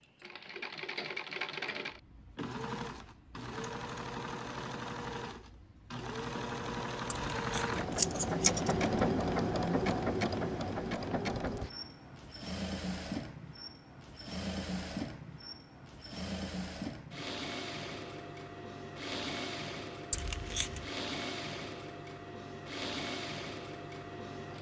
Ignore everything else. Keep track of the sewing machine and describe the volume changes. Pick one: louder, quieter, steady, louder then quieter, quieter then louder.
louder then quieter.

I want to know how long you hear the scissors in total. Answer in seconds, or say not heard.
2 s.